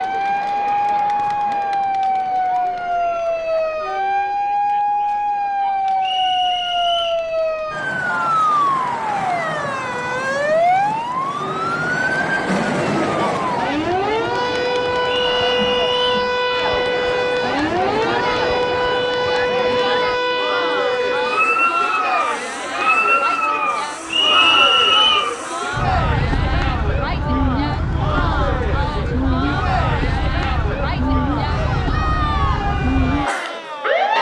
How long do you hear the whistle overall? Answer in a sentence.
You can hear the whistle for 3 seconds altogether.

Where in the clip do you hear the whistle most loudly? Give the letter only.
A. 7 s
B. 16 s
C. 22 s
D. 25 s
D.